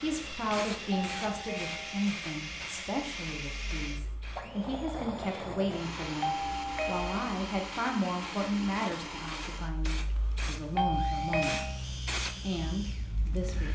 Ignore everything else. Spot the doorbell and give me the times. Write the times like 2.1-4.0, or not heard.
0.9-2.0, 6.2-7.3, 10.8-11.8.